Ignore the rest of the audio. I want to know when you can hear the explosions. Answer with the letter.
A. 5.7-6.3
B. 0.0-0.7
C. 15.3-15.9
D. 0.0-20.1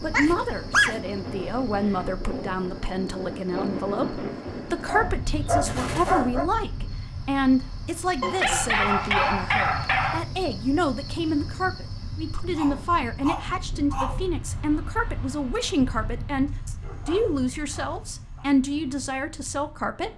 A.